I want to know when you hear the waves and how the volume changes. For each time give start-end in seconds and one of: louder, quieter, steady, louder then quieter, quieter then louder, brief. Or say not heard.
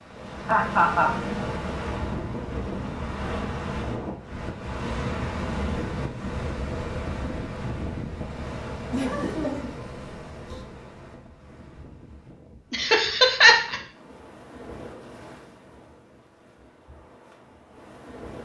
0.0-18.4 quieter.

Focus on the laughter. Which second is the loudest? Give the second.
13 s.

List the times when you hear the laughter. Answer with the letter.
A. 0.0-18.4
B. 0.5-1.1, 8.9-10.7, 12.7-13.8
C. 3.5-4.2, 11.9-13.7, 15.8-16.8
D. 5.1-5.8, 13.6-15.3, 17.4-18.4
B.